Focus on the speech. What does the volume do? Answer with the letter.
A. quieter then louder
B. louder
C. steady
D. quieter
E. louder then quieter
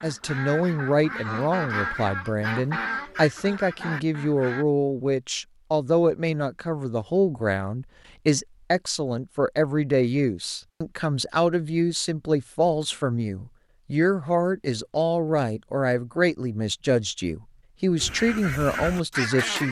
C.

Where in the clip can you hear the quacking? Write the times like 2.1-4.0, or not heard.
0.0-4.7, 17.9-19.6.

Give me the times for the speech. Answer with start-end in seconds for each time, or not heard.
0.0-19.6.